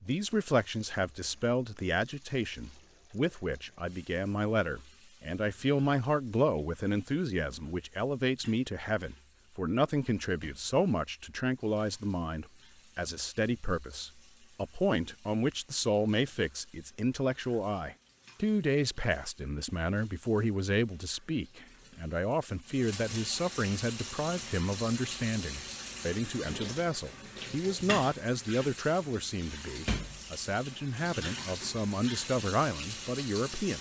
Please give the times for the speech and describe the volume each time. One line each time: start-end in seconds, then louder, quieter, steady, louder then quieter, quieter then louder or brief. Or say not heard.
0.0-33.7 steady.